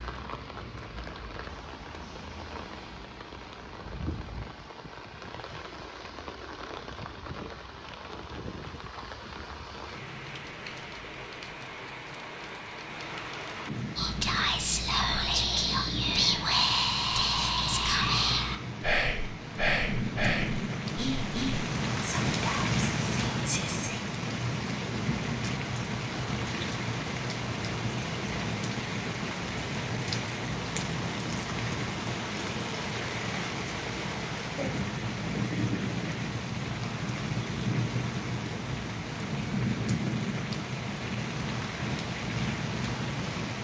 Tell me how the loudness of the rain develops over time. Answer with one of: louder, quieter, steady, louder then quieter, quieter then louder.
louder.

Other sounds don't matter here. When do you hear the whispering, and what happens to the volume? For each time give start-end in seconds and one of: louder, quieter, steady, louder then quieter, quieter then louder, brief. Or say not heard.
13.9-24.0 quieter.